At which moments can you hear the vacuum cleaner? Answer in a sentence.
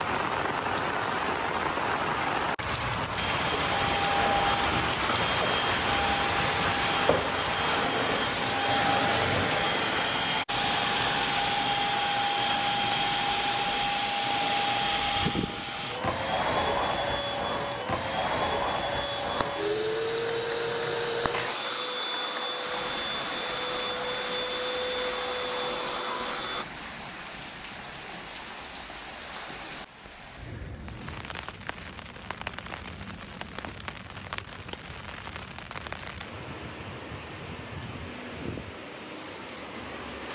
The vacuum cleaner can be heard from 3.1 to 26.6 s.